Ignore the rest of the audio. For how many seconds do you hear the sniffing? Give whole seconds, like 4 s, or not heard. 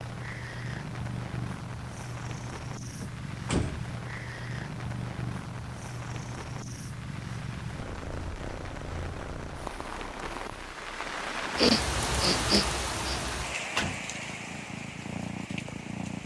2 s.